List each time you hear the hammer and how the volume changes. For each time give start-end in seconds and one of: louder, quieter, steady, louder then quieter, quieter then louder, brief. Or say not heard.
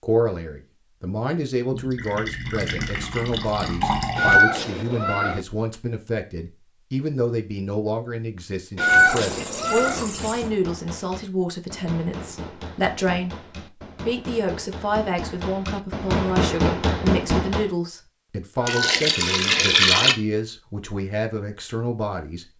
9.8-17.7 louder.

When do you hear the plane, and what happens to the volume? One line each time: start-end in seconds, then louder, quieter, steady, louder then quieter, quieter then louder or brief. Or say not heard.
not heard.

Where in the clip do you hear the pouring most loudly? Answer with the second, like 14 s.
20 s.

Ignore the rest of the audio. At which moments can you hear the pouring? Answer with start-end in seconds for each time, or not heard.
1.7-4.5, 8.8-10.5, 18.6-20.1.